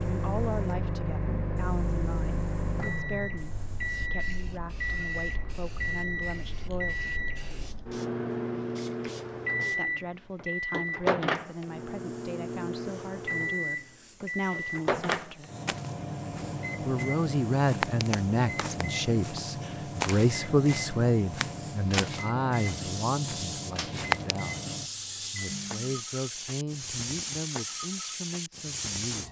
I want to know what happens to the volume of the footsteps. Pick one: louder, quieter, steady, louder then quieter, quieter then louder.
louder then quieter.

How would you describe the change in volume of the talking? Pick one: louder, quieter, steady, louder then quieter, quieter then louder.
louder then quieter.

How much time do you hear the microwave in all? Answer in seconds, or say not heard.
26 s.